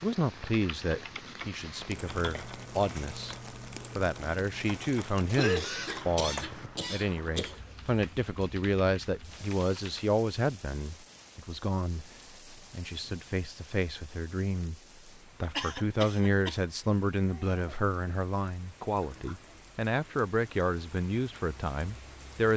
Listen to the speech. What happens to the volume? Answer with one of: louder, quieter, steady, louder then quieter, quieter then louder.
steady.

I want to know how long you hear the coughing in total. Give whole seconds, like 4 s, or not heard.
3 s.